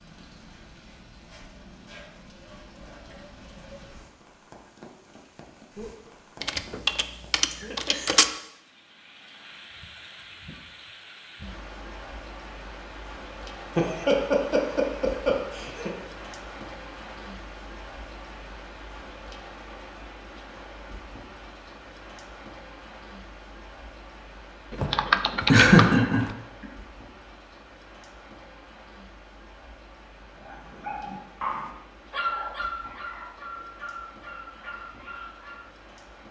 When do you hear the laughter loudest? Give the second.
26 s.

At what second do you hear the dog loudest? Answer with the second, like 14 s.
32 s.